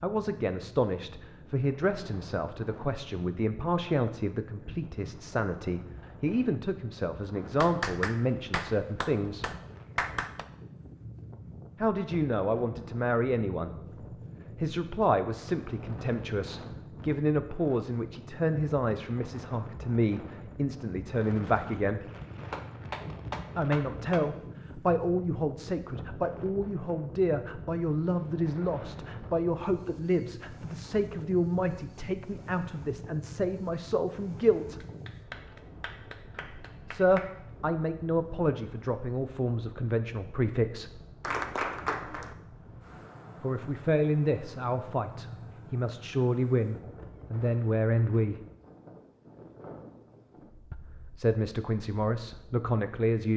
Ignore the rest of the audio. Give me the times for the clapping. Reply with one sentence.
You can hear the clapping from 7.6 to 10.4 s, from 22.5 to 24.2 s, from 34.8 to 37.3 s and from 41.2 to 42.4 s.